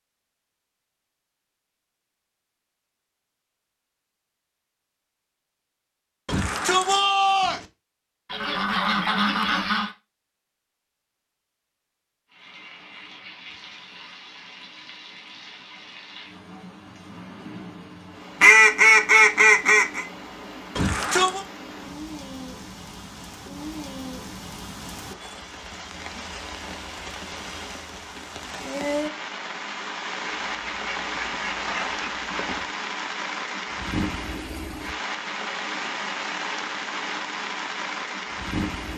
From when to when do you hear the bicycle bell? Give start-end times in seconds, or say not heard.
not heard.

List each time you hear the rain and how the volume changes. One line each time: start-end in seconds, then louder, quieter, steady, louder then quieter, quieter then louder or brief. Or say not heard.
12.3-38.9 louder.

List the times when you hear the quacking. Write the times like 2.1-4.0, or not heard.
8.3-9.9, 18.4-20.1, 30.3-32.7.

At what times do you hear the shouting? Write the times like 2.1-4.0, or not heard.
6.2-7.7, 20.8-21.4.